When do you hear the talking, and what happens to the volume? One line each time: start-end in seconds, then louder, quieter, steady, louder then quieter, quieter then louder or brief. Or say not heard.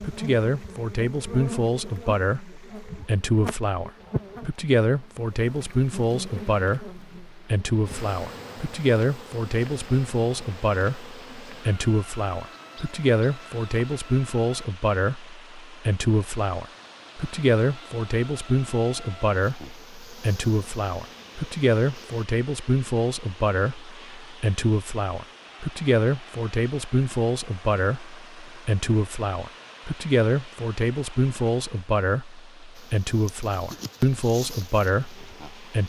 0.0-35.8 steady.